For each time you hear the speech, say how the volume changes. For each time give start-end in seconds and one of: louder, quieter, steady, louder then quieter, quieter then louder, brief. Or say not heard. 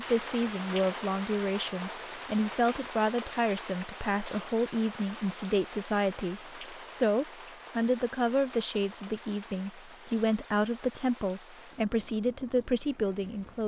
0.0-13.6 steady.